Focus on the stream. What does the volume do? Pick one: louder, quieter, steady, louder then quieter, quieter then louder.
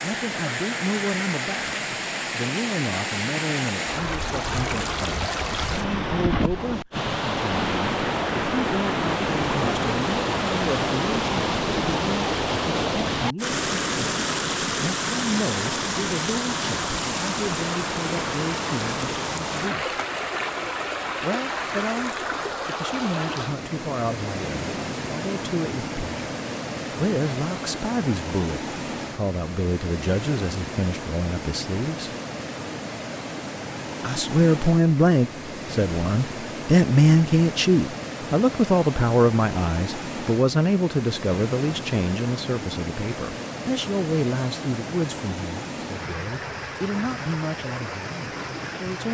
quieter.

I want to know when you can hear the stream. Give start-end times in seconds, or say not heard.
0.0-49.0.